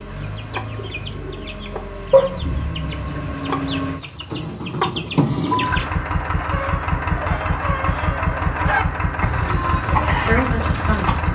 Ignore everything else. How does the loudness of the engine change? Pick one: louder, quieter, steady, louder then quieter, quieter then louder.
louder.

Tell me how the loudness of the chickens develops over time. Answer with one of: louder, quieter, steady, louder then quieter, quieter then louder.
louder.